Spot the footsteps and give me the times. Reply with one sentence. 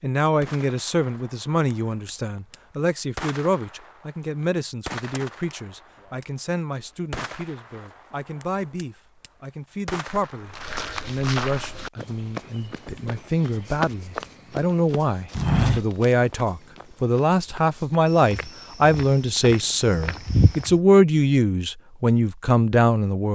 The footsteps can be heard from 10.6 to 20.8 s.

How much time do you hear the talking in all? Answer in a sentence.
You can hear the talking for 23 seconds altogether.